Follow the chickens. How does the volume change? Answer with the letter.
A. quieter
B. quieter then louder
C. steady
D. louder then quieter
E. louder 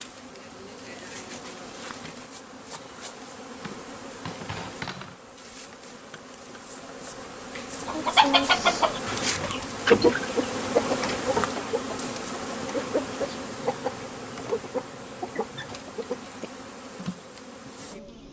A.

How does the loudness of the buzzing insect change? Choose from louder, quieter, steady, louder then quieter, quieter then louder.
louder then quieter.